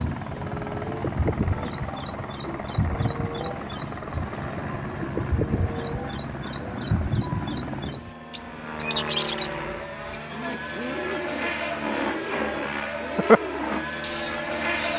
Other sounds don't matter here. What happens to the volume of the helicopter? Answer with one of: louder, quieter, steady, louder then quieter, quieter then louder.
louder.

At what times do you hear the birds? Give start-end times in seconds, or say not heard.
0.0-14.9.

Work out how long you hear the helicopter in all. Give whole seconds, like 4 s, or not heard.
15 s.